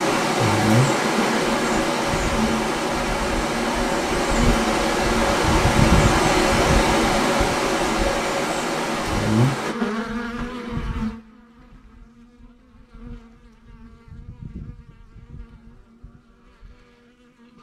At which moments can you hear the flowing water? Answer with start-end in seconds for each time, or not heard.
0.0-9.8.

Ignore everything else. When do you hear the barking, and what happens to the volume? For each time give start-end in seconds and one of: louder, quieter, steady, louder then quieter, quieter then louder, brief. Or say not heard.
not heard.